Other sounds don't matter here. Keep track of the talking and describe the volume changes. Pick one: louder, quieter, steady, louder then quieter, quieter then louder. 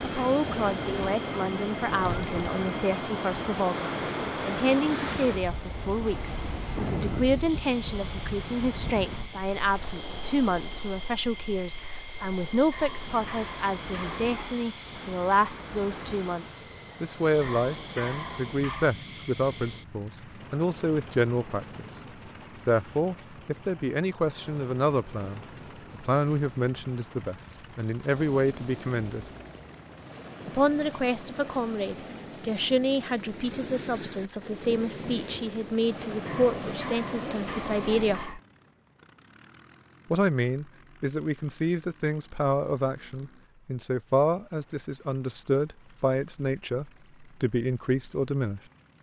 steady.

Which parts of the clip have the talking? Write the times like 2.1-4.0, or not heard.
0.0-21.9, 22.6-29.2, 30.4-38.4, 40.1-48.6.